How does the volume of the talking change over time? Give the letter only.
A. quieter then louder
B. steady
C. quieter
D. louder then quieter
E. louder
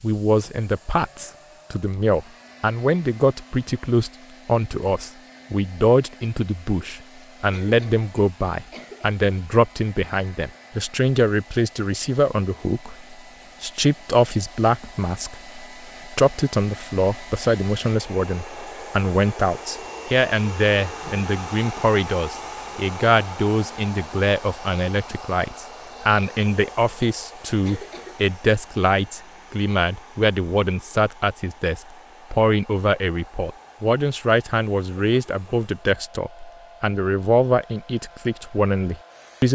B.